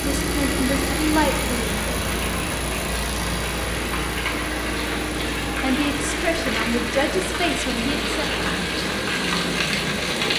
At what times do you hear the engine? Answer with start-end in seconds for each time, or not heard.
0.0-10.3.